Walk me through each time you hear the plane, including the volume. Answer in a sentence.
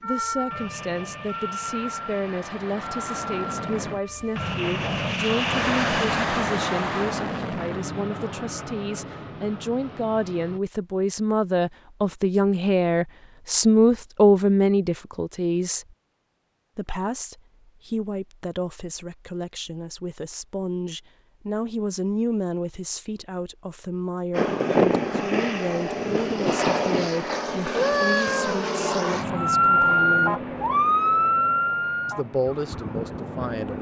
You can hear the plane from 0.0 to 10.6 s, getting louder then quieter; and from 24.3 to 33.7 s, getting quieter.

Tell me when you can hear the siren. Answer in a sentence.
You can hear the siren from 0.0 to 4.5 s and from 29.4 to 33.7 s.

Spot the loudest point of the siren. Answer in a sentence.
The loudest moment of the siren is at 30 seconds.